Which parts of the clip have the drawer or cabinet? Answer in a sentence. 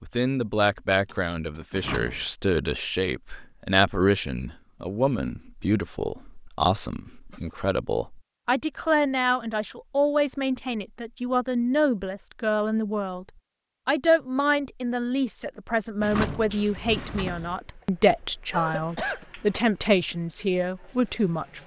The drawer or cabinet can be heard from 1.7 to 2.2 s and from 16.0 to 17.6 s.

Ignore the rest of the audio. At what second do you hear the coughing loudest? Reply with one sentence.
The loudest moment of the coughing is at 19 seconds.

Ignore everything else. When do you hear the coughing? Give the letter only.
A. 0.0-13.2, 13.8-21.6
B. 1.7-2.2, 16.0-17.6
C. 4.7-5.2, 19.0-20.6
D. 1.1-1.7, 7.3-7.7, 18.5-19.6
D.